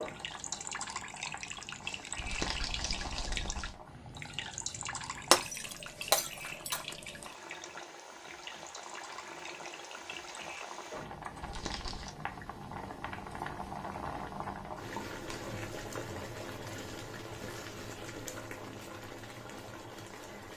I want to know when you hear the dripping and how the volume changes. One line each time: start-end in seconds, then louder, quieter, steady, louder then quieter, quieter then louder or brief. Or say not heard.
0.0-10.7 quieter.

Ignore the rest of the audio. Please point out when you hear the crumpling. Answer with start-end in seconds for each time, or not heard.
2.1-3.8, 11.4-12.2.